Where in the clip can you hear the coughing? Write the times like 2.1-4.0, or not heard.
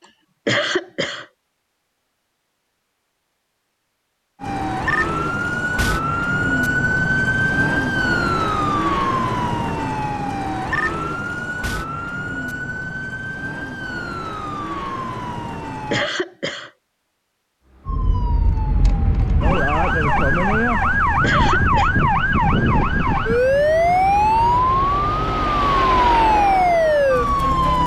0.5-1.2, 15.9-16.7, 21.2-21.9.